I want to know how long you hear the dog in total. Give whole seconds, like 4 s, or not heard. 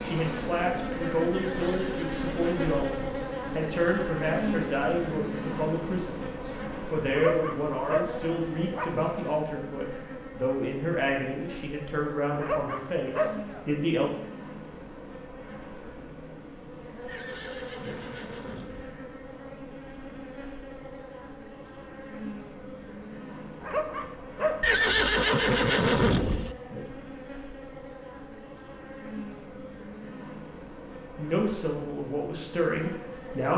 5 s.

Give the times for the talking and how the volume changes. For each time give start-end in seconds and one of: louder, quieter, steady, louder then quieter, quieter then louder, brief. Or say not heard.
0.0-14.1 steady
31.1-33.5 brief.